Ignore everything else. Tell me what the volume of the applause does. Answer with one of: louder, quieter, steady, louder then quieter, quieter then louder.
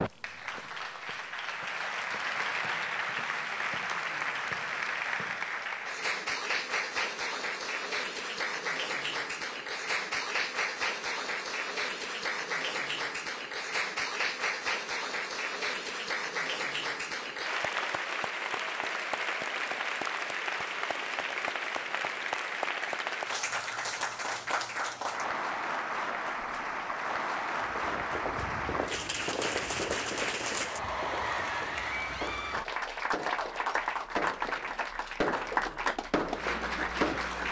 steady.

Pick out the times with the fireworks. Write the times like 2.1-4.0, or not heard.
27.6-37.2.